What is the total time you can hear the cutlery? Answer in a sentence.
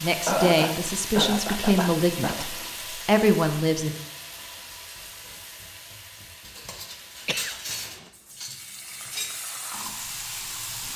The cutlery can be heard for 3 seconds in total.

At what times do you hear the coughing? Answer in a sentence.
The coughing can be heard from 0.2 to 2.5 s and from 7.2 to 8.1 s.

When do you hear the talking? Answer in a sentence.
You can hear the talking from 0.0 to 4.0 s.